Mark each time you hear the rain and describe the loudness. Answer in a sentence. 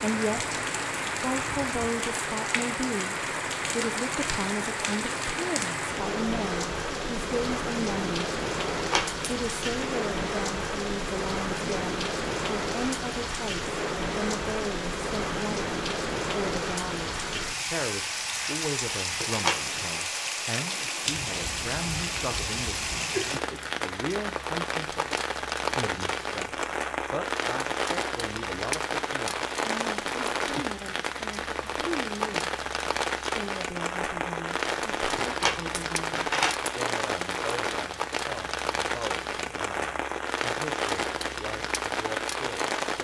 The rain can be heard from 0.0 to 42.9 s, at a steady volume.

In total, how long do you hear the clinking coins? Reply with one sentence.
The clinking coins can be heard for 3 seconds in total.